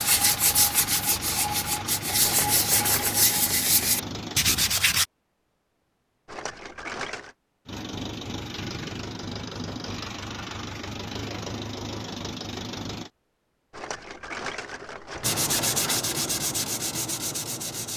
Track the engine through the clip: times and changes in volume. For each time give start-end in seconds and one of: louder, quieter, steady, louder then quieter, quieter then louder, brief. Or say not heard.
0.0-4.5 steady
7.7-13.1 steady.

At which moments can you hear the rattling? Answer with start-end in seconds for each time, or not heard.
2.2-3.4, 6.2-7.3, 13.7-16.1.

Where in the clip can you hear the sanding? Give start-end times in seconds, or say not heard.
0.0-5.0, 15.2-17.9.